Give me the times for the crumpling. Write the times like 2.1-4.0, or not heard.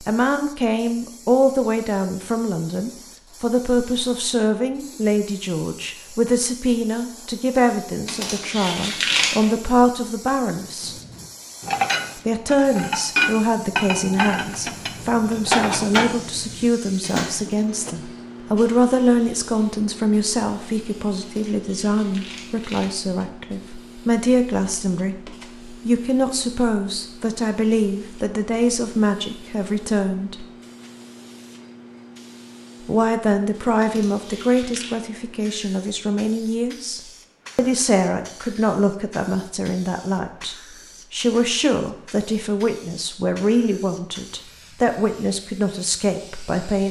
8.1-9.5, 21.2-22.9, 33.8-35.0.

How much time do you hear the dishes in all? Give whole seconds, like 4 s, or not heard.
7 s.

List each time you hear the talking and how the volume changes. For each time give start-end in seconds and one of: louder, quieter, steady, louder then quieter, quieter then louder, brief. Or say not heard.
0.0-10.9 steady
12.2-30.4 steady
32.8-46.8 steady.